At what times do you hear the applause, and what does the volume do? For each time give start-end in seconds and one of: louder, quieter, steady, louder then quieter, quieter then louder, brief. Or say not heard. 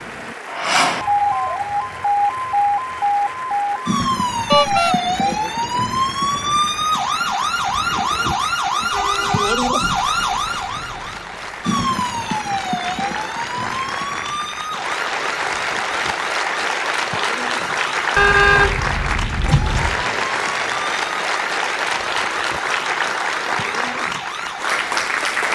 0.0-25.5 louder.